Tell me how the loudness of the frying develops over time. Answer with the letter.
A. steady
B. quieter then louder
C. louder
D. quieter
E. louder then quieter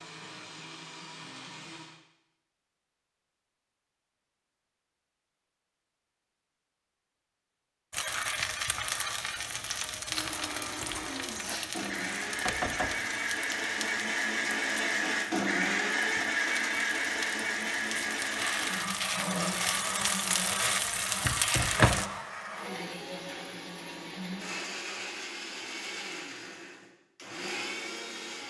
B.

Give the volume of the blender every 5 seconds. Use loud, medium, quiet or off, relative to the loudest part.
quiet, off, loud, loud, medium, medium.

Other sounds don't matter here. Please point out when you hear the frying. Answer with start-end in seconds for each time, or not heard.
7.9-22.1.